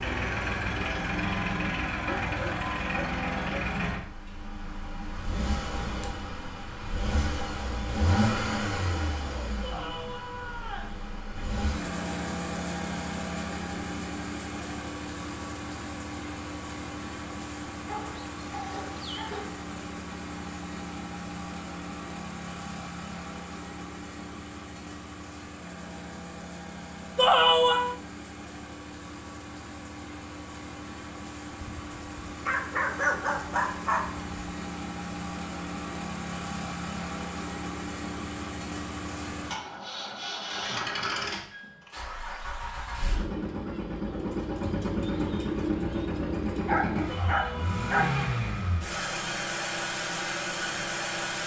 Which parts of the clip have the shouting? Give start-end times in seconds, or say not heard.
9.6-10.9, 27.1-27.9, 47.0-48.4.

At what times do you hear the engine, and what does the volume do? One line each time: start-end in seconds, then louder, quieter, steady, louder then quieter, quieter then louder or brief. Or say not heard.
0.0-51.4 quieter then louder.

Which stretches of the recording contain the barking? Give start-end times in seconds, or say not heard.
2.0-3.6, 17.9-19.6, 31.6-34.3, 46.6-48.1.